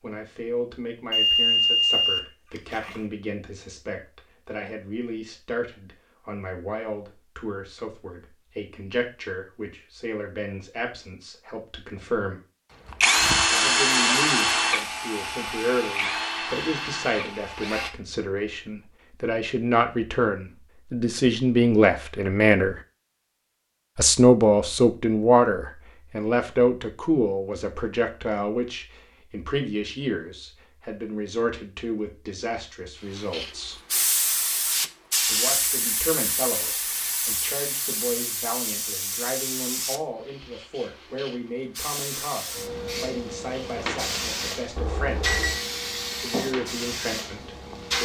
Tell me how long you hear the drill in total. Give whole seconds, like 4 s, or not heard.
5 s.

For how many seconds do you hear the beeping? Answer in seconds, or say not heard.
3 s.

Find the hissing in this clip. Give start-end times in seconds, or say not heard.
33.3-48.0.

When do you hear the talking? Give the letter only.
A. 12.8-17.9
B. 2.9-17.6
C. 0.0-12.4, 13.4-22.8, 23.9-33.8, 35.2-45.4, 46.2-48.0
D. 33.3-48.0
C.